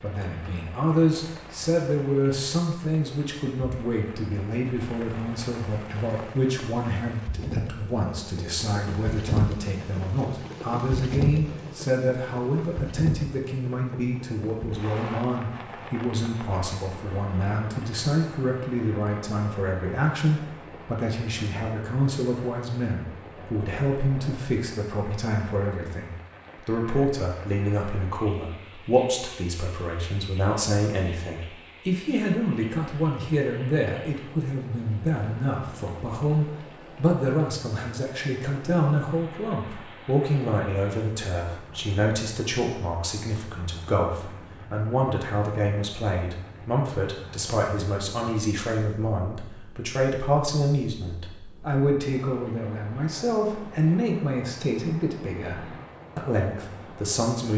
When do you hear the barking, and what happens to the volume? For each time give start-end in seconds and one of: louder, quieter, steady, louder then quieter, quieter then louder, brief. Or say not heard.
not heard.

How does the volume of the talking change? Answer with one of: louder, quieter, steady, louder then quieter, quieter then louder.
steady.